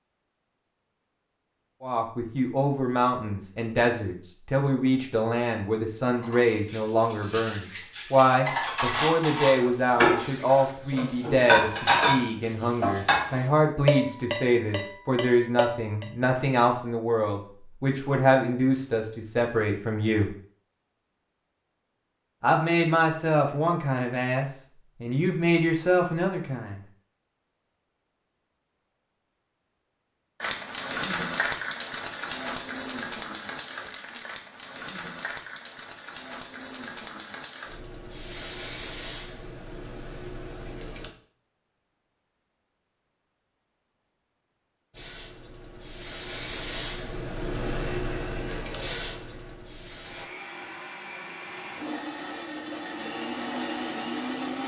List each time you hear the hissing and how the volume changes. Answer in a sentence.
You can hear the hissing from 30.4 to 41.1 s, getting quieter; and from 44.9 to 50.3 s, getting louder then quieter.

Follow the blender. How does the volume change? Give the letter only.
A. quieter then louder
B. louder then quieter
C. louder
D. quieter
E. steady
C.